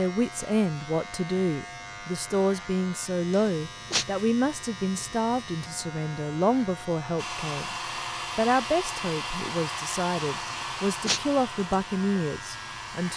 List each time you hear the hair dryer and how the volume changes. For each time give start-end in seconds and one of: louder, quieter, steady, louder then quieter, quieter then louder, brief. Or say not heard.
7.2-13.1 quieter.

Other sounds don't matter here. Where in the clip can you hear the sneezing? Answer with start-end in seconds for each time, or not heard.
3.3-4.0, 10.4-11.2.